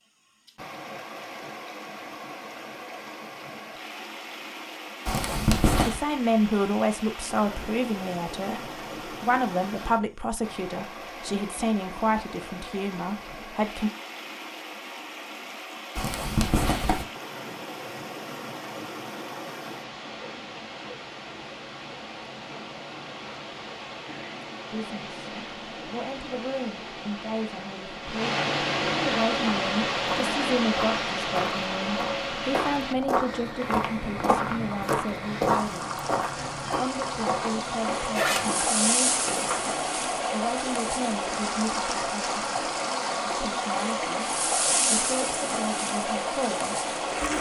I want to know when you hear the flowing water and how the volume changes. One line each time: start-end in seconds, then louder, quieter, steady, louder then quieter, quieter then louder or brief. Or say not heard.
0.5-47.3 louder.